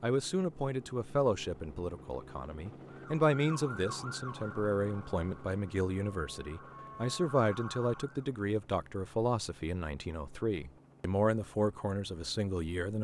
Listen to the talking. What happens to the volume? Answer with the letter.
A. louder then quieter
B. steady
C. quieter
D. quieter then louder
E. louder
B.